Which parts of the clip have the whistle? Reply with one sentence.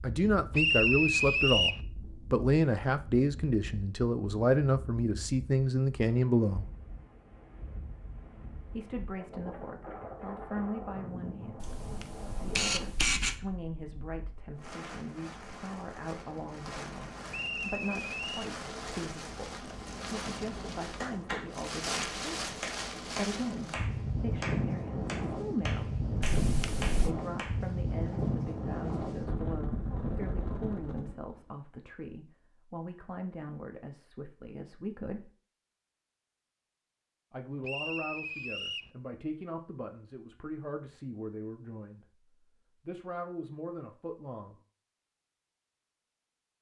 You can hear the whistle from 0.5 to 1.8 s, from 17.3 to 18.5 s and from 37.6 to 38.9 s.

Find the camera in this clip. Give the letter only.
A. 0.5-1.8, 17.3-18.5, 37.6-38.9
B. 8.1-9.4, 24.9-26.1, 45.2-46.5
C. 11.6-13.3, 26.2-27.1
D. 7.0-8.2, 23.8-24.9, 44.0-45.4
C.